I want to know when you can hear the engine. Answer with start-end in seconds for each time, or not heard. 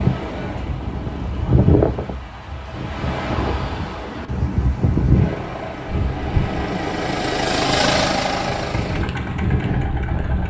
5.1-10.4.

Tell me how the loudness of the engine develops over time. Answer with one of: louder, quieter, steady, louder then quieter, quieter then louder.
louder then quieter.